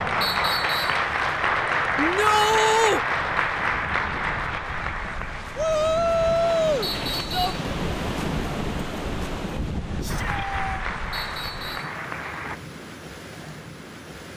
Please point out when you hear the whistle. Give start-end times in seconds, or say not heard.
0.2-1.1, 6.8-7.6, 11.1-11.9.